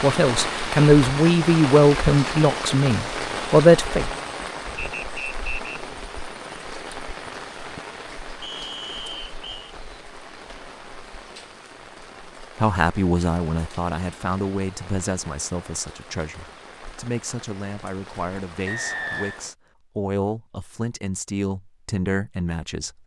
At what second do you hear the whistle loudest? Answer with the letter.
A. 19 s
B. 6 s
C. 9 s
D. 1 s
A.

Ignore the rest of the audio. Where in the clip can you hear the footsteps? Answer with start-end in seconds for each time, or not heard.
not heard.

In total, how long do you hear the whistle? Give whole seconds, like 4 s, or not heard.
3 s.